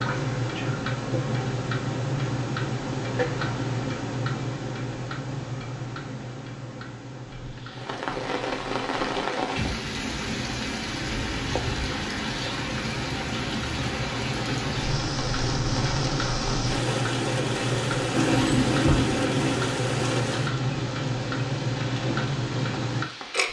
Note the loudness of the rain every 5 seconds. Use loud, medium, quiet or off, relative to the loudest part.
off, loud, loud, loud, medium.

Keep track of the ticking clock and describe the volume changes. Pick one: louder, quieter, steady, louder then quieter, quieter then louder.
quieter then louder.